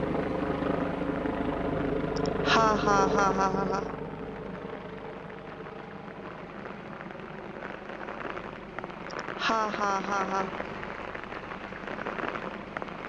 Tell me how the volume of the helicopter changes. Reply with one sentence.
The volume of the helicopter goes down.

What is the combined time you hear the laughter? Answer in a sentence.
You can hear the laughter for 3 seconds altogether.